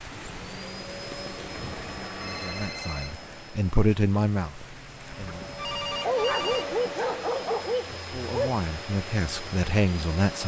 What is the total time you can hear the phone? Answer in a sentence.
The phone can be heard for 3 seconds in total.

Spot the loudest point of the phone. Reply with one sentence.
The loudest moment of the phone is at 6 seconds.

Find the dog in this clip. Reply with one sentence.
You can hear the dog from 5.0 to 8.6 s.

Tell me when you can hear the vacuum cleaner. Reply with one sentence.
The vacuum cleaner can be heard from 0.0 to 10.4 s.